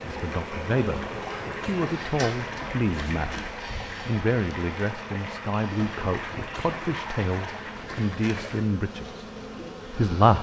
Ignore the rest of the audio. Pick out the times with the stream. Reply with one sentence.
The stream can be heard from 0.0 to 7.8 s.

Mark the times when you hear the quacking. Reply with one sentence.
You can hear the quacking from 0.9 to 3.6 s and from 6.0 to 8.7 s.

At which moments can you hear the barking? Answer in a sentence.
You can't hear the barking here.